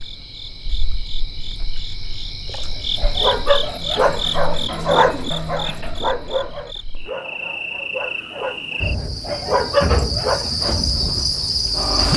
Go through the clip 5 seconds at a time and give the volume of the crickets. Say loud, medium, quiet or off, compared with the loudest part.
medium, medium, loud.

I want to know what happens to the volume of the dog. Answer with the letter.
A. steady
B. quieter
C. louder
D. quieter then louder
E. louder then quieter
D.